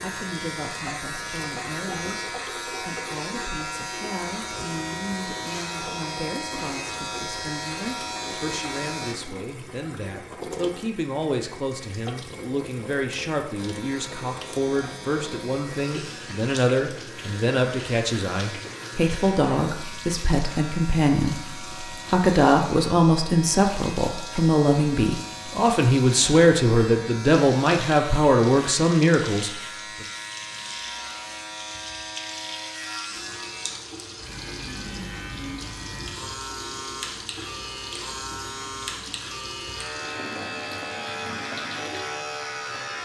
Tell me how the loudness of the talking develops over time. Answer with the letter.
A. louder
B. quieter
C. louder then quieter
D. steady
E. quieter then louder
A.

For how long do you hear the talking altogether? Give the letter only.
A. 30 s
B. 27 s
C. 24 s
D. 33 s
A.